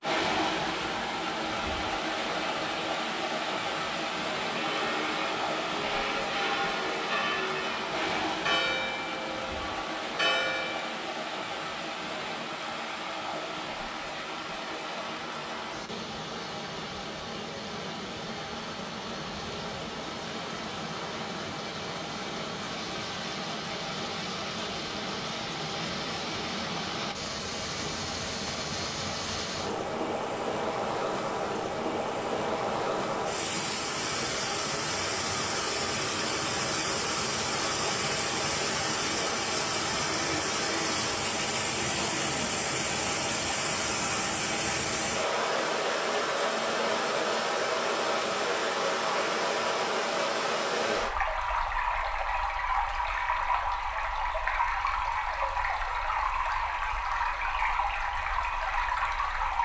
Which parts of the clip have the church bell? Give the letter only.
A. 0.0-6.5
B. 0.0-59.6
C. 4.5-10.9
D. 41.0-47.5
C.